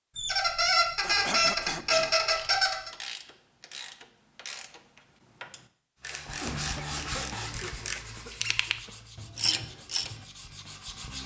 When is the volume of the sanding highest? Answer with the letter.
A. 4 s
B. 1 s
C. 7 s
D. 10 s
C.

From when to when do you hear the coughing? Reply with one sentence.
The coughing can be heard from 1.0 to 2.1 s and from 6.3 to 8.9 s.